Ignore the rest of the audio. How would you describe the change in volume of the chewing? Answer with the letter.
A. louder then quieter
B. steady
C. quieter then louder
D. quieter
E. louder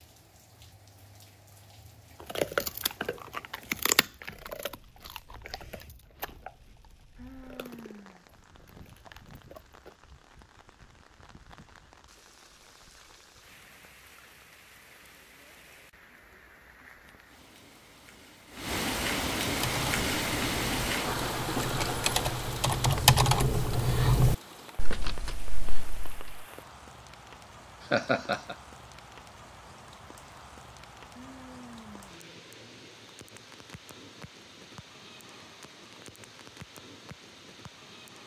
D.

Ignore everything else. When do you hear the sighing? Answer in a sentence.
You can hear the sighing from 7.2 to 8.2 s and from 31.1 to 32.1 s.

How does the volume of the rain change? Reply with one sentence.
The volume of the rain goes up, then down.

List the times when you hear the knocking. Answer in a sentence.
The knocking can't be heard in this clip.